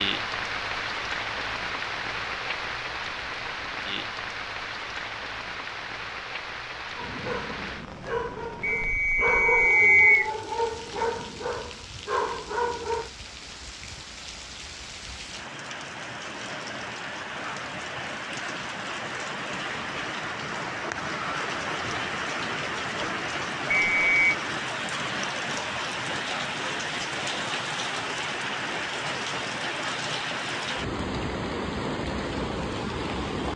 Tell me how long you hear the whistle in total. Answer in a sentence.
The whistle can be heard for 2 seconds in total.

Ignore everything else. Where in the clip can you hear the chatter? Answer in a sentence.
You can't hear the chatter here.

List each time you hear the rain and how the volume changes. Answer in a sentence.
The rain can be heard from 0.0 to 33.5 s, getting quieter then louder.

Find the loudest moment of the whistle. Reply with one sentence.
The volume of the whistle peaks at 10 seconds.